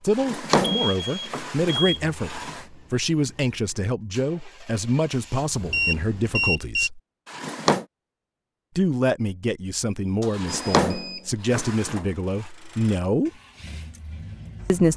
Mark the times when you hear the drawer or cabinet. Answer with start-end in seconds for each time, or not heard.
0.1-2.6, 7.2-7.8, 10.3-12.4.